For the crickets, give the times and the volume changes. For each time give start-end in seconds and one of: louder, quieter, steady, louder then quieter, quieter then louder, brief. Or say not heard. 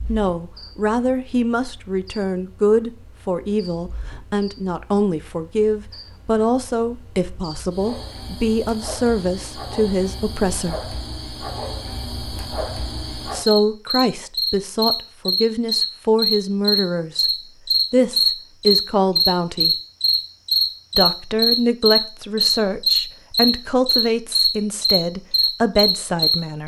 0.0-26.6 louder.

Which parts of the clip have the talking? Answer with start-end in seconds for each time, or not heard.
0.1-10.9, 13.3-17.2, 17.9-19.8, 20.9-26.6.